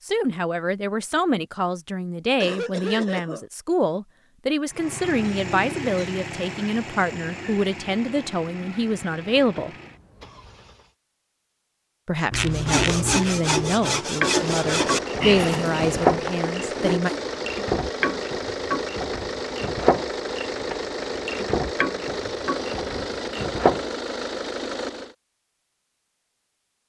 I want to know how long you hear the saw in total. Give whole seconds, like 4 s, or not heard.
5 s.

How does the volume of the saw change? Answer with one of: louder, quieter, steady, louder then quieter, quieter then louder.
quieter.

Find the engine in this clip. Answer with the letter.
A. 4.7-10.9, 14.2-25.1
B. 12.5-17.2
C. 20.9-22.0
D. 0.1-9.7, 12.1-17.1
A.